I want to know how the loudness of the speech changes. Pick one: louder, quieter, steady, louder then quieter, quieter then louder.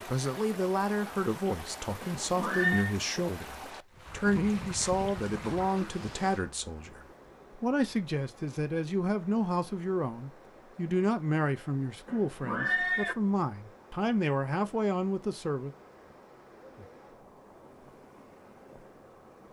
steady.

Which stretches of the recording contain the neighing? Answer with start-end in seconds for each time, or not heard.
2.0-3.0, 12.1-13.2.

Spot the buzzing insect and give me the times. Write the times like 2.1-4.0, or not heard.
not heard.